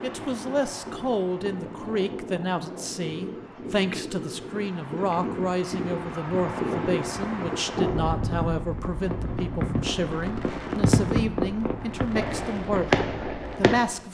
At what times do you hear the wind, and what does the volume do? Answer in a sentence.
The wind can be heard from 0.0 to 14.0 s, getting louder then quieter.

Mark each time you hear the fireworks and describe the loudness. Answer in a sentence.
The fireworks can be heard from 6.3 to 13.8 s, getting louder.